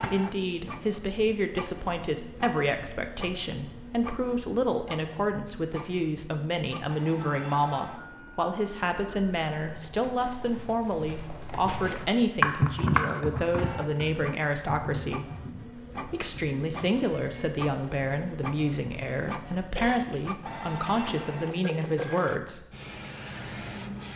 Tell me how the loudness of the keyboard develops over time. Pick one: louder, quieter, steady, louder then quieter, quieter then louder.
louder then quieter.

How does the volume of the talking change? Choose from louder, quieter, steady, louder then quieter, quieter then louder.
steady.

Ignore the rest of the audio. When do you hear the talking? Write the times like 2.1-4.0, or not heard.
0.0-15.2, 16.1-22.6.